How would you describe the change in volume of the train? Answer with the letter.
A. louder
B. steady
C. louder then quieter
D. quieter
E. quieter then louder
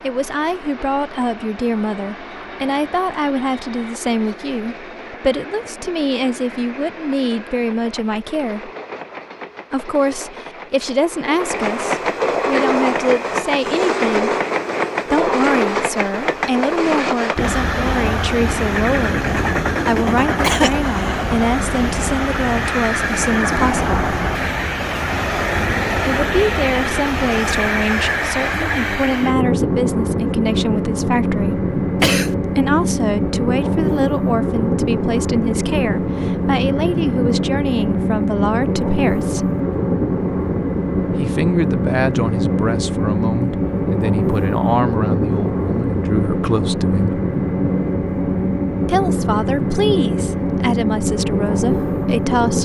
A.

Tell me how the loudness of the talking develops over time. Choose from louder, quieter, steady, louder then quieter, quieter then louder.
steady.